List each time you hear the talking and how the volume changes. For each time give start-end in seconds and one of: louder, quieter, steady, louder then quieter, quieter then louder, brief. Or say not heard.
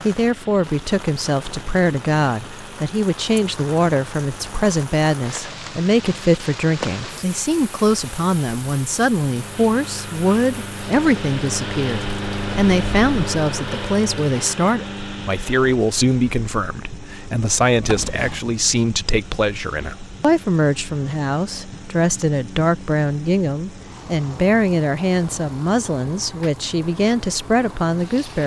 0.0-28.4 steady.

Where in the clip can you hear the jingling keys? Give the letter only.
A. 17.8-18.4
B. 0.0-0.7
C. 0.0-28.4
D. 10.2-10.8
A.